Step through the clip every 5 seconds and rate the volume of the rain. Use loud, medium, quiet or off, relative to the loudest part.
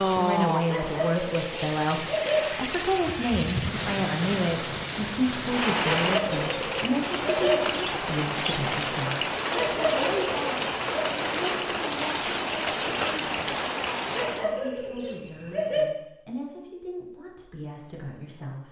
loud, loud, loud, off.